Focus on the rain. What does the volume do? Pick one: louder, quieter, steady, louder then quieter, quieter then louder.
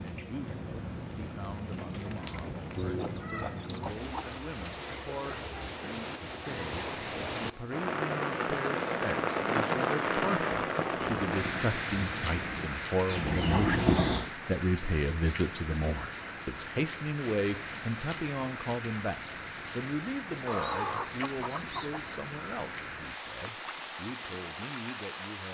louder then quieter.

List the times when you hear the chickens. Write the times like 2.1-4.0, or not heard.
2.8-4.2, 20.4-22.0.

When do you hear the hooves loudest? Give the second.
14 s.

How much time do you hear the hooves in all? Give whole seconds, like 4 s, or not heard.
3 s.